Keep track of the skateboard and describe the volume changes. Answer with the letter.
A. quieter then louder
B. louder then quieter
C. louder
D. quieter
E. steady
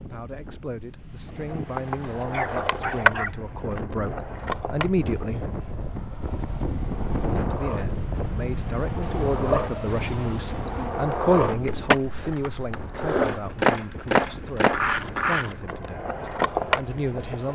A.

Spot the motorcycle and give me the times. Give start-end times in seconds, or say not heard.
not heard.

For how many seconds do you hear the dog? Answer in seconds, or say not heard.
3 s.